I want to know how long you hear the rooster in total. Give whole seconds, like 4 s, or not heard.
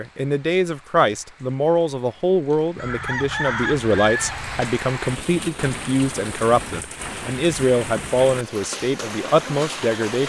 2 s.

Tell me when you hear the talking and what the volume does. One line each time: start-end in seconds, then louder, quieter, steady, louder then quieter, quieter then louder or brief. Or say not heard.
0.0-10.2 steady.